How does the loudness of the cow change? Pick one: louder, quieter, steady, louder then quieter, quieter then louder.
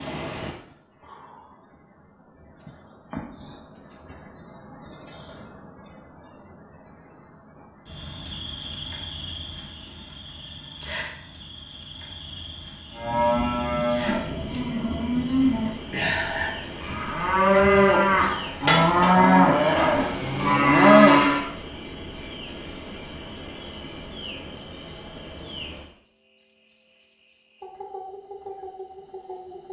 louder.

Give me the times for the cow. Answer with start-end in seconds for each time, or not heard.
12.9-21.4.